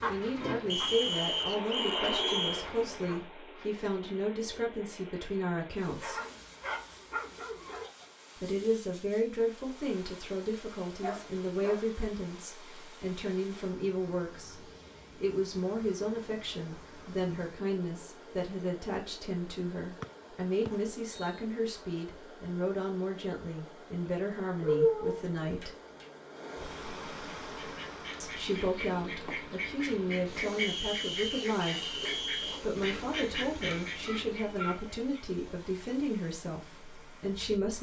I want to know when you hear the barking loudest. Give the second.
25 s.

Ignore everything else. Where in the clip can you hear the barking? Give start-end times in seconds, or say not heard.
6.0-7.9, 11.0-11.8, 24.6-26.1, 33.6-35.2.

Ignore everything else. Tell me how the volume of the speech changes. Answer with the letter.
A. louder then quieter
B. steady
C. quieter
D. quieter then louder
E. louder
B.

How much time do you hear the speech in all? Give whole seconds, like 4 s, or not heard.
33 s.